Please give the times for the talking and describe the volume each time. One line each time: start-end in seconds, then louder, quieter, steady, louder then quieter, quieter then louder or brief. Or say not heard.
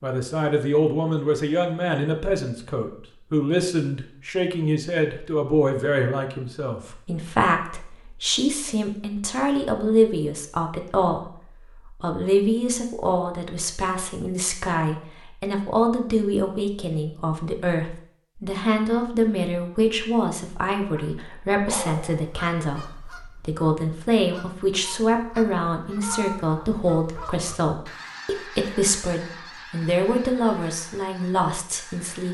0.0-32.2 steady.